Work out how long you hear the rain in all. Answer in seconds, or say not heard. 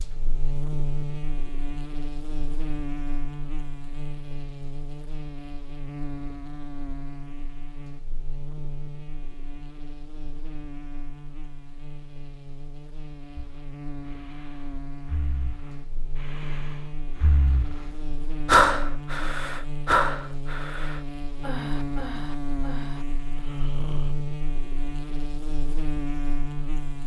not heard.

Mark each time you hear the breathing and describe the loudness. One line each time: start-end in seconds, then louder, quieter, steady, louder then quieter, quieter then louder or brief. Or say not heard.
13.3-24.1 louder then quieter.